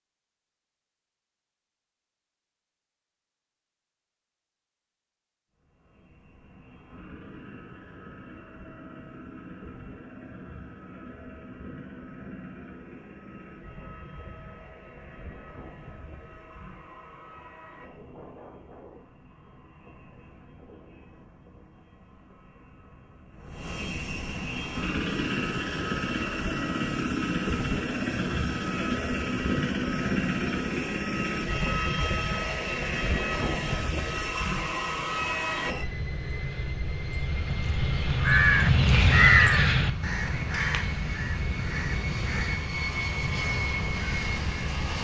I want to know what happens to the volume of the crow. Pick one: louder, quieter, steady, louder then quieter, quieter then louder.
louder then quieter.